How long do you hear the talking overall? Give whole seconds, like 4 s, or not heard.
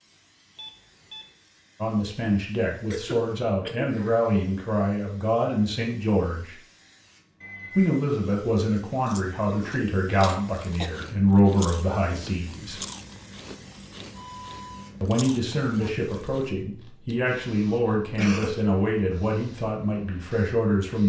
16 s.